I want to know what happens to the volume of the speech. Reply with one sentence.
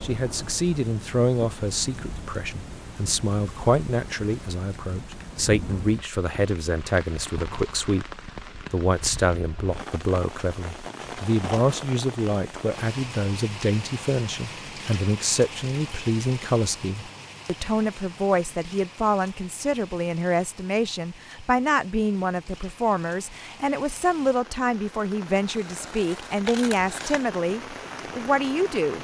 The volume of the speech stays about the same.